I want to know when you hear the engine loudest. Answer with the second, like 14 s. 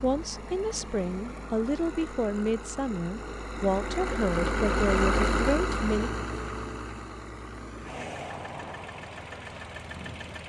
5 s.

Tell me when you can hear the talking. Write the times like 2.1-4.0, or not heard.
0.0-6.1.